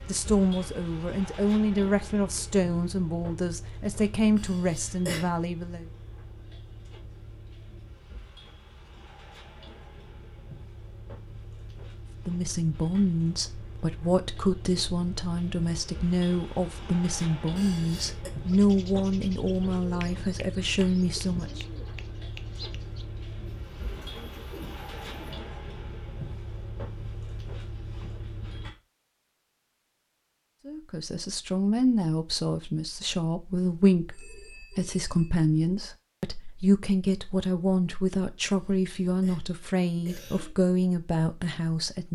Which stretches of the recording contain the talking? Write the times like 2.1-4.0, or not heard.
0.1-5.8, 12.2-21.6, 30.6-42.1.